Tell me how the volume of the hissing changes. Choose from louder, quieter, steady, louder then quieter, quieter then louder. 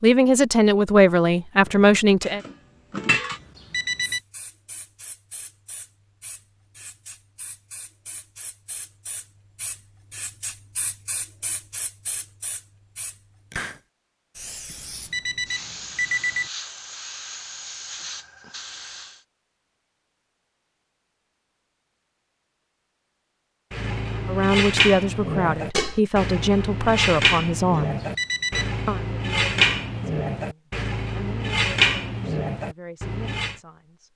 louder.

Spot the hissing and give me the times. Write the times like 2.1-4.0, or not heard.
4.0-19.2.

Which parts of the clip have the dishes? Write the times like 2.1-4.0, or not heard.
1.6-3.4, 23.7-33.5.